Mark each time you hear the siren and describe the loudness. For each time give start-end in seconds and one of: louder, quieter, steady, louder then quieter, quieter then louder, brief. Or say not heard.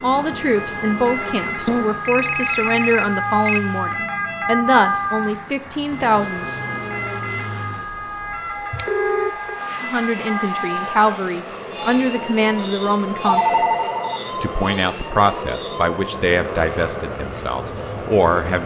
0.0-18.6 quieter.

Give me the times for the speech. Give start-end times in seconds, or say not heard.
0.0-6.6, 9.8-18.6.